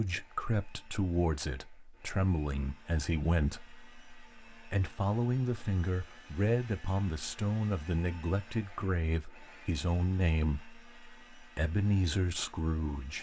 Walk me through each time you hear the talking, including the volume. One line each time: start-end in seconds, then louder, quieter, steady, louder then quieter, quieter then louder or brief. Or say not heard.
0.0-13.1 steady.